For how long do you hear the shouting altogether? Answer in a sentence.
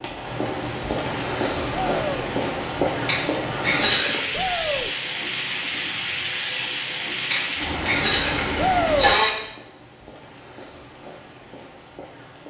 The shouting can be heard for 2 seconds in total.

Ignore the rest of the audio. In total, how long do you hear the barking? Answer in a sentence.
The barking can't be heard in this clip.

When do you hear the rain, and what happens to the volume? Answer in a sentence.
You can hear the rain from 0.0 to 12.4 s, getting quieter.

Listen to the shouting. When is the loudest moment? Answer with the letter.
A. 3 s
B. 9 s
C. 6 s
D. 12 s
B.